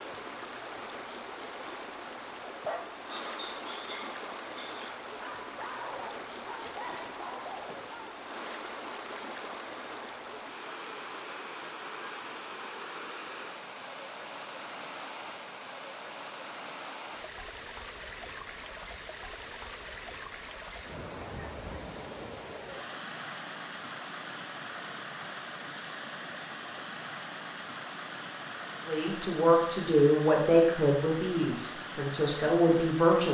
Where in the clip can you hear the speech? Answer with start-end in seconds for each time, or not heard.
28.9-33.2.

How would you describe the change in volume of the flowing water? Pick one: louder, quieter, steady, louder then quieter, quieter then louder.
steady.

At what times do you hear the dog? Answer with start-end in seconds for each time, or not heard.
2.6-8.1.